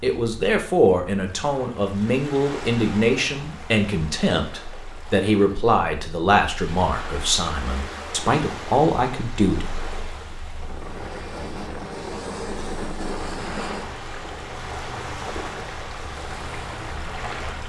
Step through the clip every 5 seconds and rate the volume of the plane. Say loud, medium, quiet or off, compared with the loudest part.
off, off, loud, medium.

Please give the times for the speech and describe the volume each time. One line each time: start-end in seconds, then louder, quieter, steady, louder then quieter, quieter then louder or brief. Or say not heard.
0.0-9.8 steady.